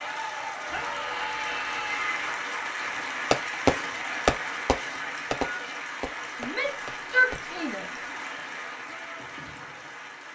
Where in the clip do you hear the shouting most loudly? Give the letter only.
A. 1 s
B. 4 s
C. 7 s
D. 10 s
C.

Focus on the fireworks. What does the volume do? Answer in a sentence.
The volume of the fireworks goes down.